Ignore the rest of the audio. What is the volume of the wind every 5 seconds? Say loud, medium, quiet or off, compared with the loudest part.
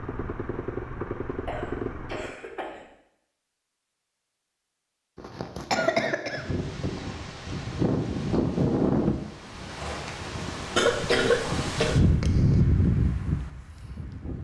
off, loud, loud.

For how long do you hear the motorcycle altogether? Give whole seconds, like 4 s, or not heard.
2 s.